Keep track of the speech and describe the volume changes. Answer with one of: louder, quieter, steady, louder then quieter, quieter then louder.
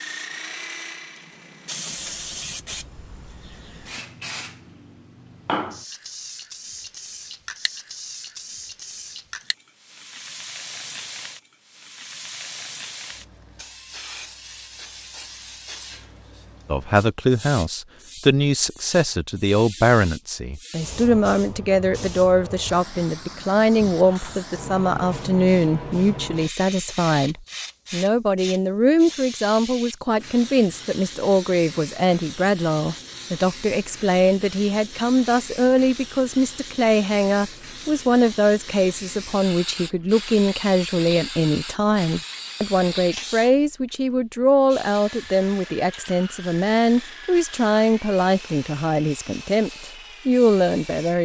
steady.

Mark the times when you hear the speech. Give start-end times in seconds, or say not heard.
16.6-51.2.